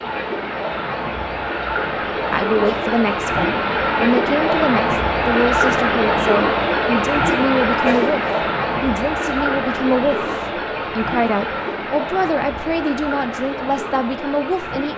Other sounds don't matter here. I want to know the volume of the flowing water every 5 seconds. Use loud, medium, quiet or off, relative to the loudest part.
loud, loud, medium.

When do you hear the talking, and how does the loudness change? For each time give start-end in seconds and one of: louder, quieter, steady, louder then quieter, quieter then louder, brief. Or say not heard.
2.3-14.9 steady.